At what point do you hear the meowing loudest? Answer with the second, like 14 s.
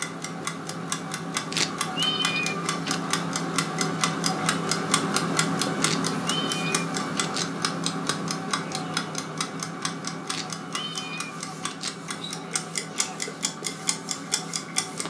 2 s.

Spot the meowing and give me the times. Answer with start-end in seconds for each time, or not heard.
1.5-3.0, 5.8-7.5, 10.2-12.1.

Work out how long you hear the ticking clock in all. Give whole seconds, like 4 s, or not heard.
15 s.